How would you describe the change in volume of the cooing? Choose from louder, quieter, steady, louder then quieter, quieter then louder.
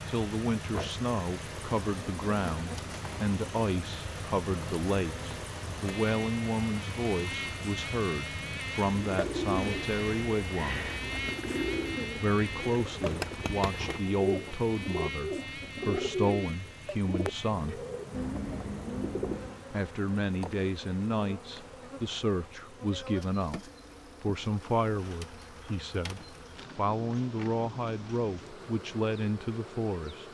steady.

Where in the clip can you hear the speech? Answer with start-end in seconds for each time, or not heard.
0.1-10.9, 12.2-17.9, 19.7-30.2.